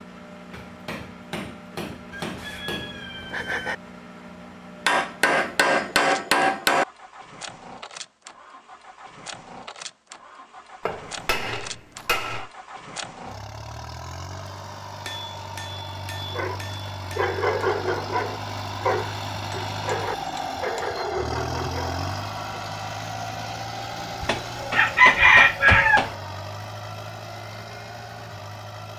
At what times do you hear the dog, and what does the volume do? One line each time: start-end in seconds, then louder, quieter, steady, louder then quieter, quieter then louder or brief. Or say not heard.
16.3-22.6 quieter.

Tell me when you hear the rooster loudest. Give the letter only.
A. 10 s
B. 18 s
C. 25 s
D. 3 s
C.